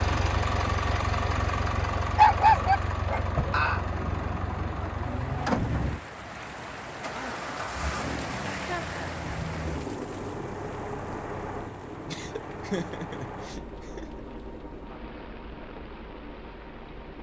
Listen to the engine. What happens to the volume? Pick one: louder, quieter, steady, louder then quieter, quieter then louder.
quieter.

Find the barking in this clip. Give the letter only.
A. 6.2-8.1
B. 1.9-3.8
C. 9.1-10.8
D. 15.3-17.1
B.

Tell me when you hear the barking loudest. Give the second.
2 s.